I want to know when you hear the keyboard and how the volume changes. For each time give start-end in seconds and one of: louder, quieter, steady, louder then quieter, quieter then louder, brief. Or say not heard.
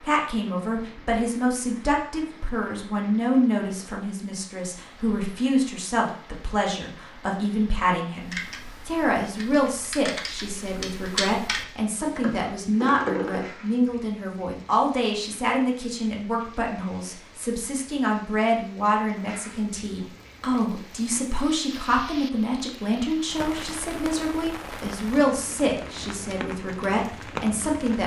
8.2-13.4 louder.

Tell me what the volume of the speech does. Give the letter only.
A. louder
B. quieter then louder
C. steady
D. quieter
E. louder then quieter
C.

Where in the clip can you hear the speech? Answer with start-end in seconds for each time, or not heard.
0.0-28.0.